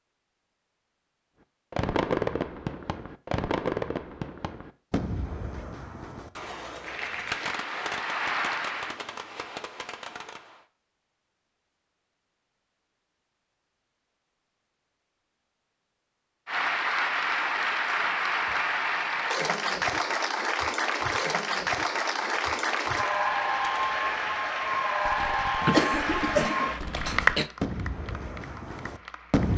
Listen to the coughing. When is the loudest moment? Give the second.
26 s.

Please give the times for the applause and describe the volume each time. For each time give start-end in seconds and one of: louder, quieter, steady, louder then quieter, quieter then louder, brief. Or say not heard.
6.8-9.0 brief
16.4-29.5 steady.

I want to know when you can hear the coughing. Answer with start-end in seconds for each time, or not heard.
25.6-27.5.